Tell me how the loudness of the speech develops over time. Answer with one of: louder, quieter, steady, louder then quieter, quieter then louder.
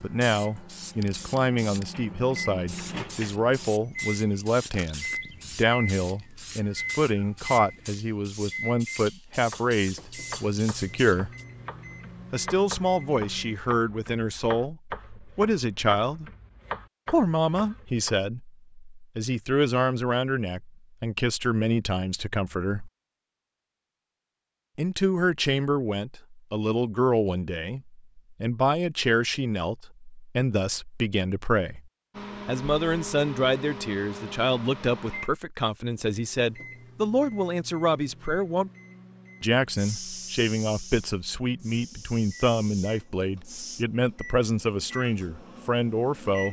steady.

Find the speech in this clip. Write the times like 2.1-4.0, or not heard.
0.0-11.3, 12.3-16.3, 17.1-22.9, 24.8-31.8, 32.5-38.7, 39.4-46.4.